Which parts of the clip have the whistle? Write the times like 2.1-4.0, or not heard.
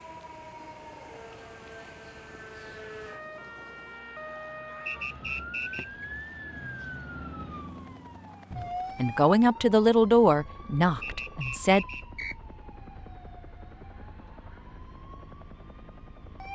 4.8-6.0, 11.0-12.3.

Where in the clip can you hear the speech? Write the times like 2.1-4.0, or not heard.
8.6-11.8.